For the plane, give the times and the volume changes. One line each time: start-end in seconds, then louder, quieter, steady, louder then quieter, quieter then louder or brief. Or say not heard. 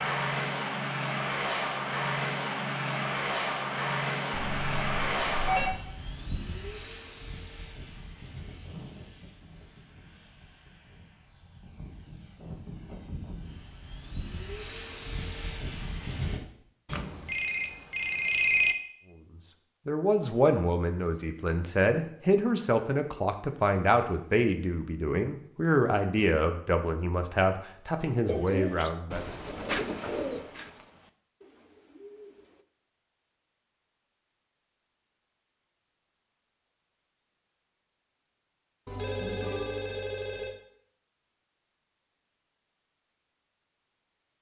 0.0-16.4 quieter then louder.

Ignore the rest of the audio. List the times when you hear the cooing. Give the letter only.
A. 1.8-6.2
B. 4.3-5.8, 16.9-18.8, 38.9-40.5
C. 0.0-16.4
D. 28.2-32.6
D.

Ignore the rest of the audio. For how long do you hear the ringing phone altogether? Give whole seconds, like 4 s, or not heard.
5 s.